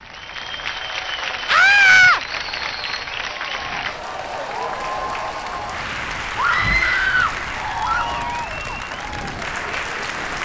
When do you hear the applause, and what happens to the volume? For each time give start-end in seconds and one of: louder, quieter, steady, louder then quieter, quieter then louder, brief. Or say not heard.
0.0-10.4 steady.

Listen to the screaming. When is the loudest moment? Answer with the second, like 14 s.
2 s.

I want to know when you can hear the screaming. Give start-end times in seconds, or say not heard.
1.4-2.2, 6.3-8.1.